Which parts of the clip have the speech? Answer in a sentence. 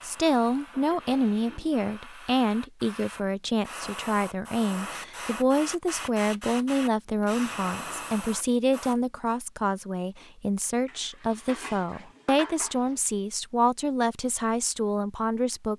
You can hear the speech from 0.0 to 15.7 s.